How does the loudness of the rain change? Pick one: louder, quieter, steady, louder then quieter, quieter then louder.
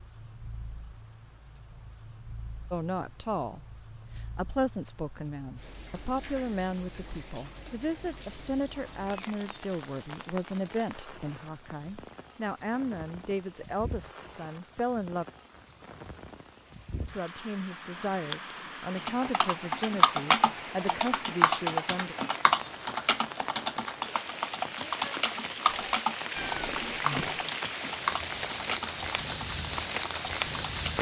louder.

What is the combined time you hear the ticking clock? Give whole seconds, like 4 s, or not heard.
not heard.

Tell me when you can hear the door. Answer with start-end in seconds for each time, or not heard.
not heard.